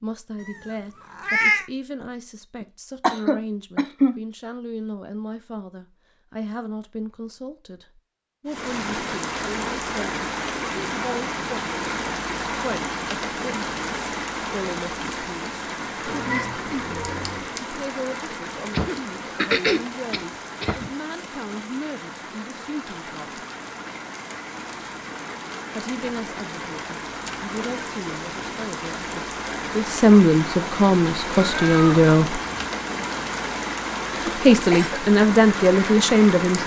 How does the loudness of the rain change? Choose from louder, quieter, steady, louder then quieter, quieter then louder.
quieter then louder.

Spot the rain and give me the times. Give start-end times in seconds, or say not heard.
8.4-36.6.